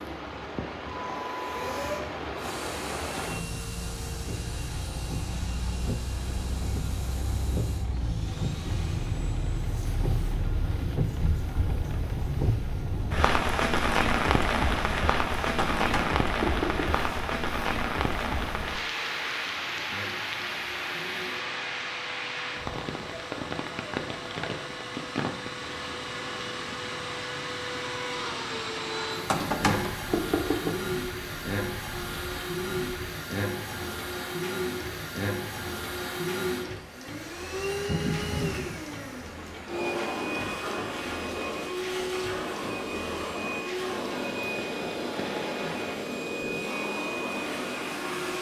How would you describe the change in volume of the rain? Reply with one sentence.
The volume of the rain goes up, then down.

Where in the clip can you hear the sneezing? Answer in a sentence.
You can't hear the sneezing here.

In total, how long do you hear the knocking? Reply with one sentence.
The knocking can be heard for 3 seconds in total.